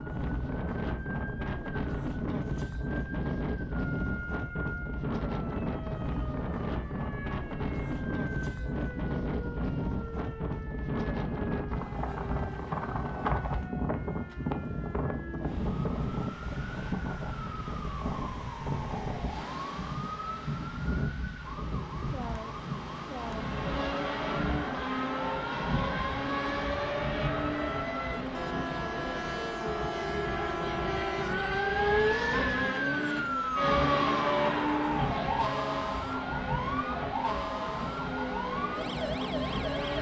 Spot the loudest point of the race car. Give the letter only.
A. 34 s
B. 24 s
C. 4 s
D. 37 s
A.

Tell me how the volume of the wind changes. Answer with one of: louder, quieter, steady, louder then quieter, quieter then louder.
quieter.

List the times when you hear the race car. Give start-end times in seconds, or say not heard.
23.2-39.9.